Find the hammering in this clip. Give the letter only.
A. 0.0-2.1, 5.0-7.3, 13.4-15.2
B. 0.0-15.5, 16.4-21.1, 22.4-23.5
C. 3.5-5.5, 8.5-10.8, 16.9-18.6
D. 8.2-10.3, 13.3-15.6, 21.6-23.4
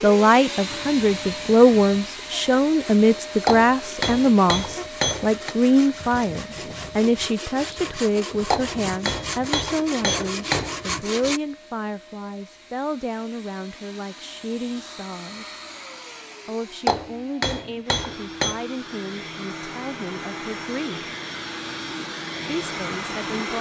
C.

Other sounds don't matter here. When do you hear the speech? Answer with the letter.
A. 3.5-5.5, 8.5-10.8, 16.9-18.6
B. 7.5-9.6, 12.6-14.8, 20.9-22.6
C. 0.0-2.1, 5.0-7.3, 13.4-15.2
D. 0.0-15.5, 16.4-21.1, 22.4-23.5
D.